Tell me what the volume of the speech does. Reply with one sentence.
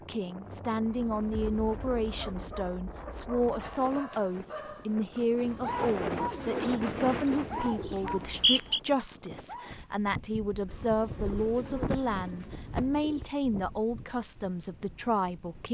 The volume of the speech stays about the same.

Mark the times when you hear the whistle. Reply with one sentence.
The whistle can be heard from 8.1 to 8.8 s.